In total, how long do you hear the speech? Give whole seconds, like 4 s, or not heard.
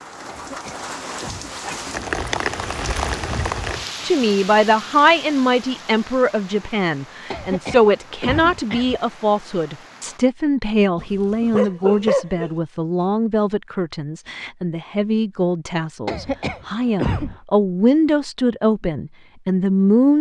16 s.